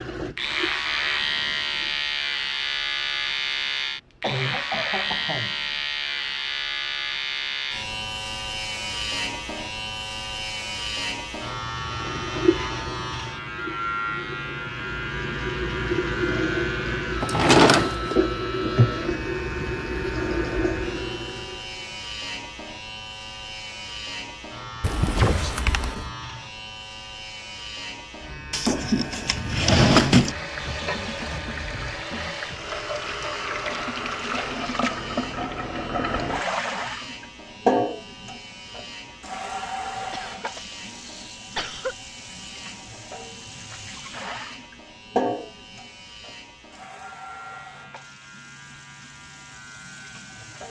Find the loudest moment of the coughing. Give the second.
25 s.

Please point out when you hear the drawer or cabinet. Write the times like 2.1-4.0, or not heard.
17.2-18.1, 28.5-30.4.